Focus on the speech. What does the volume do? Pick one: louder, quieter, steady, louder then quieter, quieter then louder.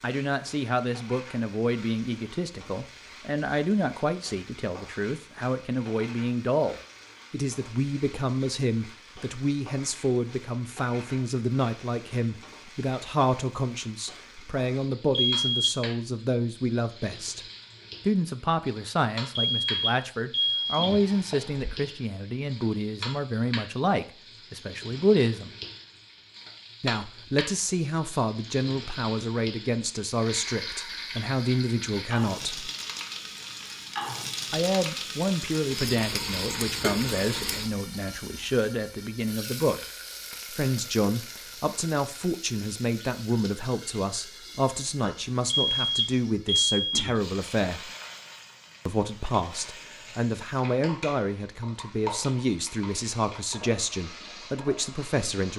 steady.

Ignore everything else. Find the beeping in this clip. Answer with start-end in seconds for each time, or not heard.
15.1-15.8, 19.4-21.6, 45.5-47.1.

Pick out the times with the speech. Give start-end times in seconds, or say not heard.
0.0-17.4, 18.1-25.6, 26.8-32.7, 34.5-39.9, 40.5-47.9, 48.9-55.5.